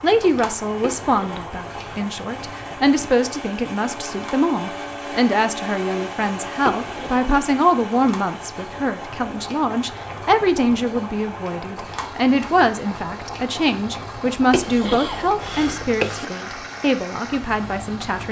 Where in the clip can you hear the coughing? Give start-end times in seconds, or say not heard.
0.8-2.0, 6.6-7.5, 14.5-16.2.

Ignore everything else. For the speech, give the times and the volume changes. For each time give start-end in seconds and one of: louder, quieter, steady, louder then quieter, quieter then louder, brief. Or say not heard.
0.0-18.2 steady.